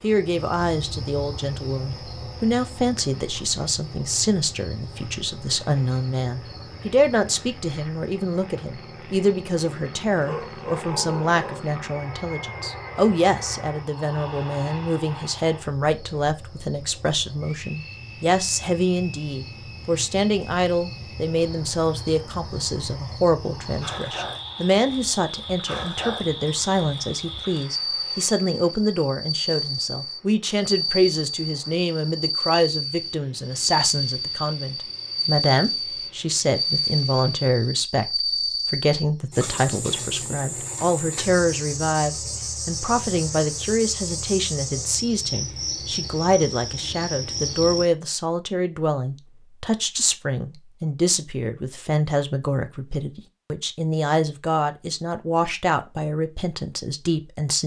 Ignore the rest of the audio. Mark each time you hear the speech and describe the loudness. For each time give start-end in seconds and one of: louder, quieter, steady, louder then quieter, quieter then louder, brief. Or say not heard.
0.0-57.6 steady.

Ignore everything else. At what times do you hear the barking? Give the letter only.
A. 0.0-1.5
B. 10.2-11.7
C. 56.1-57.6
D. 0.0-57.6
B.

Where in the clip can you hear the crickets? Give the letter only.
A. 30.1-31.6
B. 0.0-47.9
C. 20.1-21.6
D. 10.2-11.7
B.